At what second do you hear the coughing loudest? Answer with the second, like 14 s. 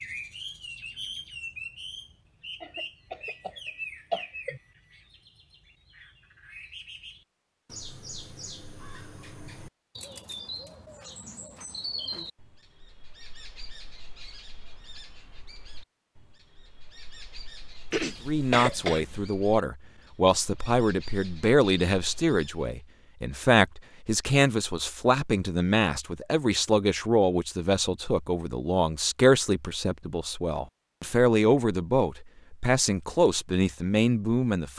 19 s.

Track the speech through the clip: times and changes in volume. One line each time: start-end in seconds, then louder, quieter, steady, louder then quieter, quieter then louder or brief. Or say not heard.
18.2-34.7 steady.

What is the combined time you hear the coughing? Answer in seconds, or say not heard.
3 s.